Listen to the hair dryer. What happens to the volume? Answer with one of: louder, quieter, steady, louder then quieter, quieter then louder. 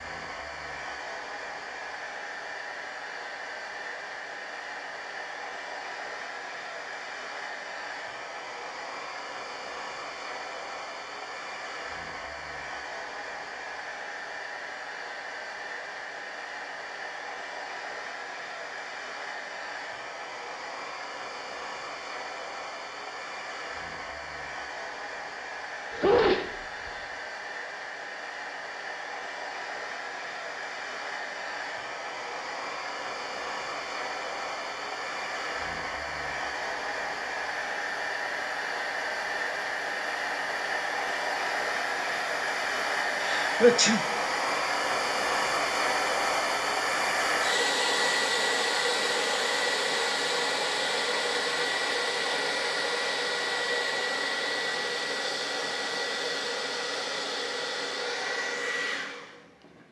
louder.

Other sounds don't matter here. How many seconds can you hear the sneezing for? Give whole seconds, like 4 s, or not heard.
2 s.